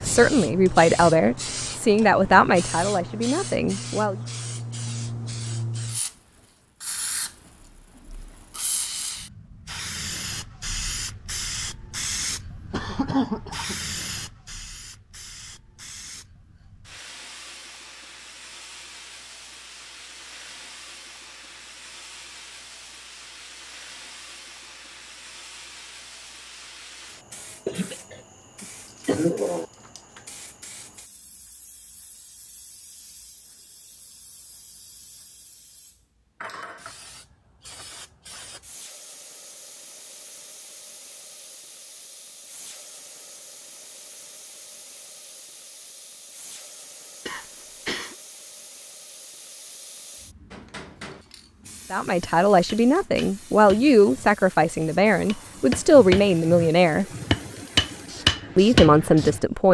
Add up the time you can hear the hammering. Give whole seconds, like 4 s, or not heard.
9 s.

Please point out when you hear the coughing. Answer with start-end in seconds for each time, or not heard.
12.7-13.8, 27.6-29.6, 47.2-48.1.